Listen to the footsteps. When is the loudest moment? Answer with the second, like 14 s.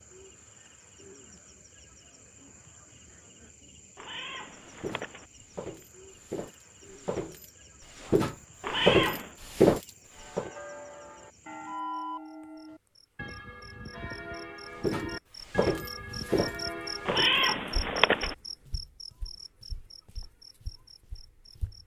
10 s.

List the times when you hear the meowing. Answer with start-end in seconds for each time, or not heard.
4.0-5.2, 8.6-9.3, 17.1-18.4.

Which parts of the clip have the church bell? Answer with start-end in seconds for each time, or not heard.
10.1-17.2.